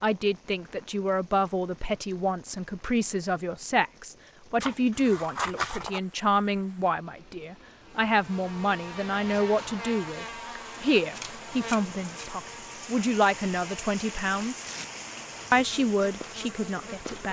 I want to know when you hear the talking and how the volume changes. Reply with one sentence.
The talking can be heard from 0.0 to 14.7 s, at a steady volume; and briefly from 15.5 to 17.2 s.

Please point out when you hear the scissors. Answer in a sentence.
The scissors can be heard from 4.6 to 6.0 s and from 11.1 to 12.3 s.